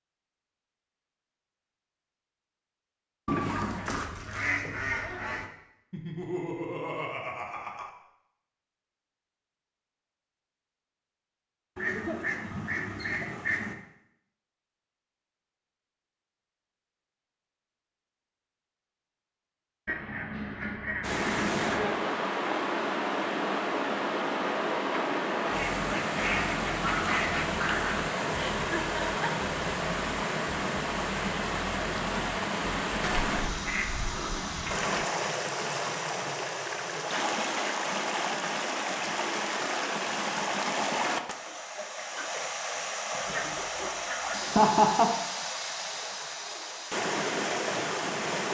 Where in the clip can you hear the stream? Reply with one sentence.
The stream can be heard from 21.0 to 48.4 s.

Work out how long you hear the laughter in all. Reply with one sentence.
The laughter can be heard for 4 seconds in total.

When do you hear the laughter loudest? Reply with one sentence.
The loudest moment of the laughter is at 45 seconds.